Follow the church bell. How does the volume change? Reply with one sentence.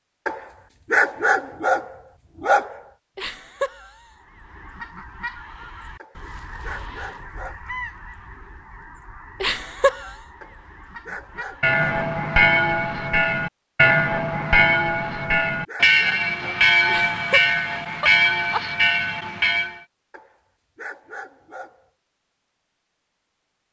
The volume of the church bell stays about the same.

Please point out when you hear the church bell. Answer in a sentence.
You can hear the church bell from 11.6 to 19.8 s.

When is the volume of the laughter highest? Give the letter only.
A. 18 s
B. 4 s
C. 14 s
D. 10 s
D.